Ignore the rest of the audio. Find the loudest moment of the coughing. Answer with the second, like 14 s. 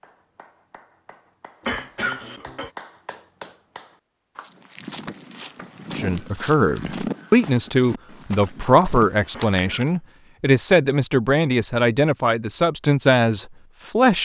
2 s.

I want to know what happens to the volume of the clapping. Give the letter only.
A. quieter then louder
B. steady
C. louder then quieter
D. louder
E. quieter
D.